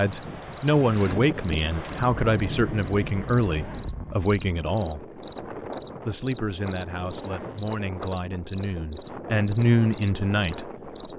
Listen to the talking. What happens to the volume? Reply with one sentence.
The volume of the talking goes down, then up.